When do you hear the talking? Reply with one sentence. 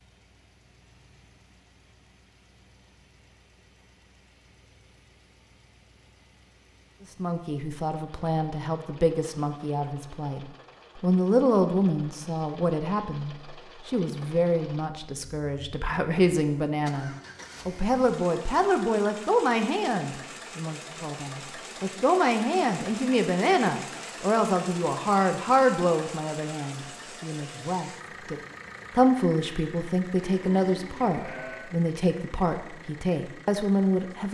You can hear the talking from 7.2 to 34.2 s.